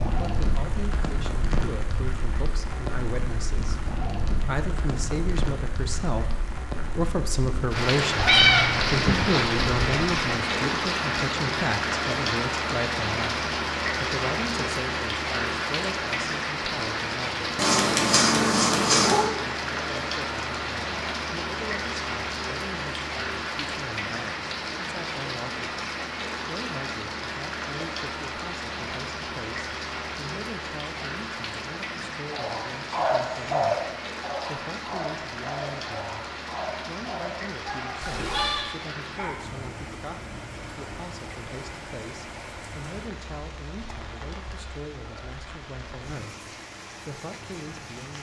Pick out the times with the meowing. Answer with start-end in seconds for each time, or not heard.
8.2-10.2, 17.6-19.3, 38.0-38.7.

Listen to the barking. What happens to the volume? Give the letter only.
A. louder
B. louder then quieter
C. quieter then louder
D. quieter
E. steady
D.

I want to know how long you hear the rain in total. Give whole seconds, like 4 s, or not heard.
48 s.